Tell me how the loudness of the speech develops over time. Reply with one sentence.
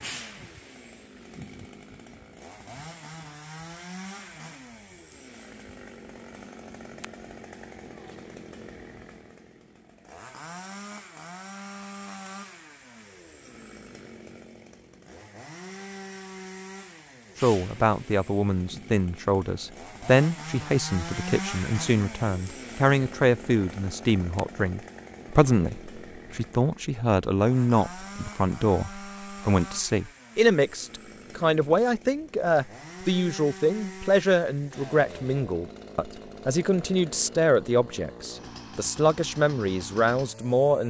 The volume of the speech stays about the same.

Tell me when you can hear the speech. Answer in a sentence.
You can hear the speech from 17.4 to 40.8 s.